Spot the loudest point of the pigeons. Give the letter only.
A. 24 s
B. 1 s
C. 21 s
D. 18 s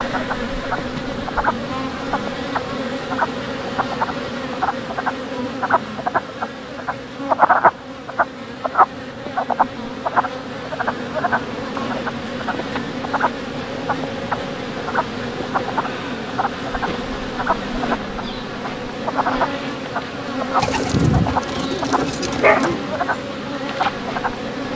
C.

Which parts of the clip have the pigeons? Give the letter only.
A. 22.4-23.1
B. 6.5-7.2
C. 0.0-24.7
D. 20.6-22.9
D.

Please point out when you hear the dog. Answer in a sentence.
The dog can be heard from 22.4 to 23.1 s.